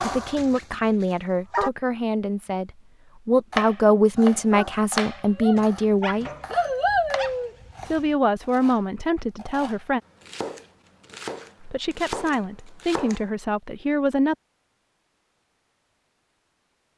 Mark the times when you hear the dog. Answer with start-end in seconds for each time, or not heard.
0.0-1.7, 4.2-8.0.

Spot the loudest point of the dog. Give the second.
7 s.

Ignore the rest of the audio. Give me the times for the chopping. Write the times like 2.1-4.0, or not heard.
3.5-13.2.